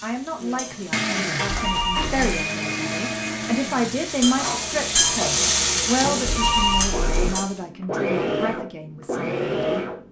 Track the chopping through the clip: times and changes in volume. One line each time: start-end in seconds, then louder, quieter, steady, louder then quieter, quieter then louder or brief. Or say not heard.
not heard.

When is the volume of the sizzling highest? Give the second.
5 s.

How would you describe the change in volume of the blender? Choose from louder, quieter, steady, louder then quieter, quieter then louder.
quieter then louder.